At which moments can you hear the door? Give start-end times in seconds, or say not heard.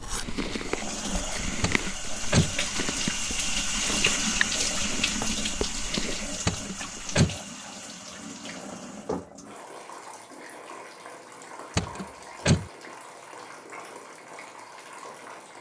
1.6-2.5, 6.5-7.4, 11.8-12.7.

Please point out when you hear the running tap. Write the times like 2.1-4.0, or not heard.
0.0-15.5.